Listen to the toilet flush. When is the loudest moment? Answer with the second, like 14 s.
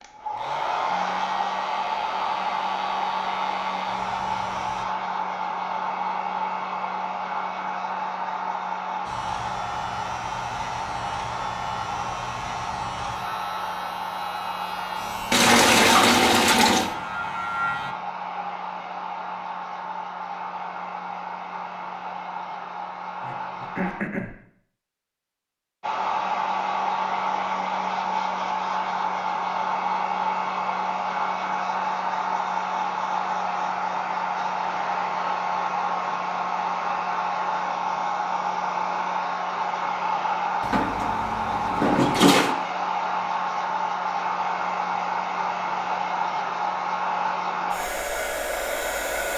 16 s.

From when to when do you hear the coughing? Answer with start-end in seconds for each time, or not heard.
23.2-24.4.